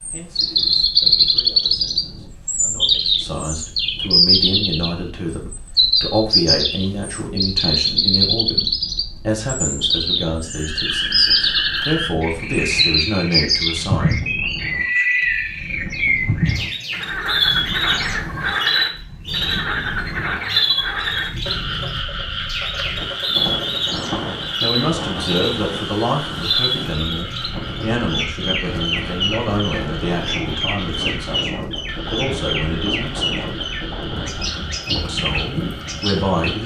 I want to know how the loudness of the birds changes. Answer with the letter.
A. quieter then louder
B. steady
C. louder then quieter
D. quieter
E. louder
D.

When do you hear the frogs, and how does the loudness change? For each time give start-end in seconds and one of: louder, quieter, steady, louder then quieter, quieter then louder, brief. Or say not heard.
10.4-36.6 quieter.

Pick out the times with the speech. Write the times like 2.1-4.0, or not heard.
0.1-14.4, 24.6-33.5, 35.0-36.6.